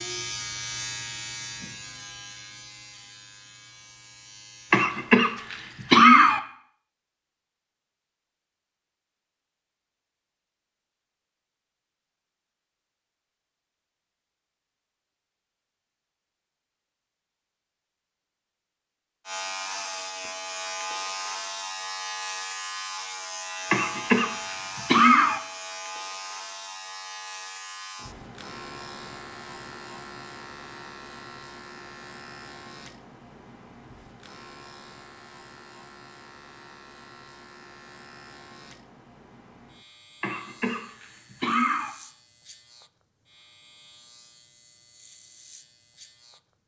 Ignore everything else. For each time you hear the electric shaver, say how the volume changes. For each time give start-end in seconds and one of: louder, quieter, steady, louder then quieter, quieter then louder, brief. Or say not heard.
0.0-4.9 quieter
19.2-46.6 quieter.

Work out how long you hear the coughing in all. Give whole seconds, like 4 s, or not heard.
5 s.